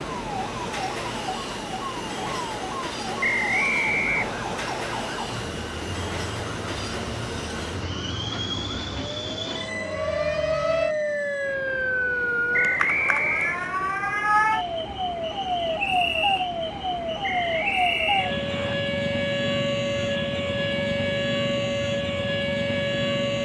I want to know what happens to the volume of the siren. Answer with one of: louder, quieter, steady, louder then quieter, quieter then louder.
louder.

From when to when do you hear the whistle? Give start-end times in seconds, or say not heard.
3.2-4.4, 12.5-13.6, 17.2-18.8.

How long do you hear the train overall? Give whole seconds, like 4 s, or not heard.
23 s.